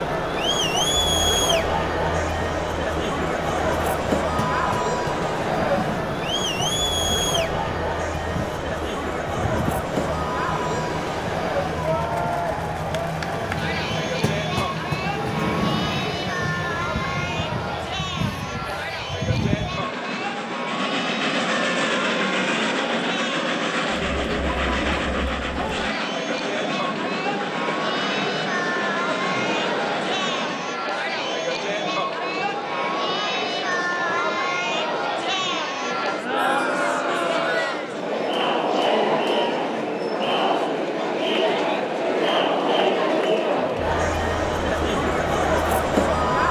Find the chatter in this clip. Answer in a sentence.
You can hear the chatter from 0.0 to 46.4 s.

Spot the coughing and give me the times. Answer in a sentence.
You can't hear the coughing here.